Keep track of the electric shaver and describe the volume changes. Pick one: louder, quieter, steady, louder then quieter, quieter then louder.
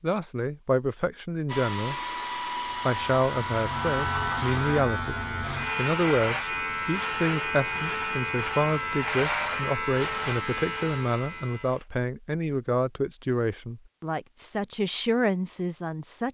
steady.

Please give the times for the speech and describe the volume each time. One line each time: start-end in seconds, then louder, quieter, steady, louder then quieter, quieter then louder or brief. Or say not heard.
0.0-2.0 brief
2.9-16.2 steady.